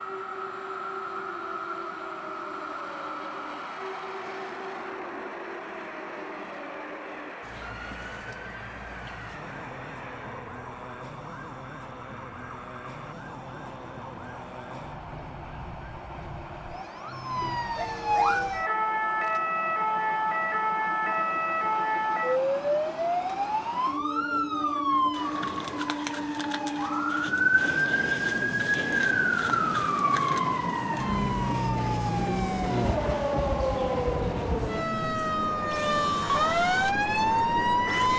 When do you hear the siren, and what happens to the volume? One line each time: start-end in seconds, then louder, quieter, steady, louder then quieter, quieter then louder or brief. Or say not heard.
0.0-38.1 louder.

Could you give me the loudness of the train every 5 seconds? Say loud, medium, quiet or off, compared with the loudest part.
loud, medium, medium, medium, loud, loud, loud, loud.